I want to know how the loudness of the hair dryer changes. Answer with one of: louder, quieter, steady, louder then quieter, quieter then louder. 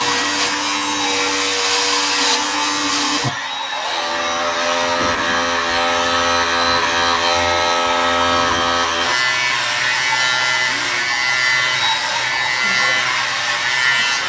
steady.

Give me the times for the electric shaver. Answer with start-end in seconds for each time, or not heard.
0.0-14.2.